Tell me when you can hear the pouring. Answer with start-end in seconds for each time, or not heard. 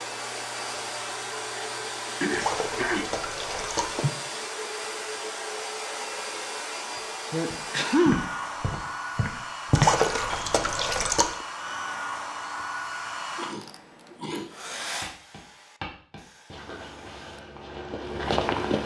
2.3-4.0, 9.7-11.4.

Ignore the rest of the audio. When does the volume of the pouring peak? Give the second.
10 s.